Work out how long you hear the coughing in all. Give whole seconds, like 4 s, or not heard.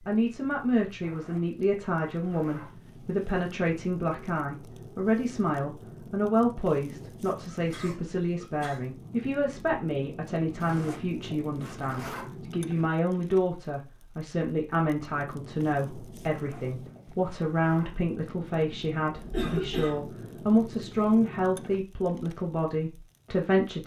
2 s.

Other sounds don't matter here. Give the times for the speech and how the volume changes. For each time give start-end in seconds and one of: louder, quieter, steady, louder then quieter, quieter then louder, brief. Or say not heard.
0.0-23.8 steady.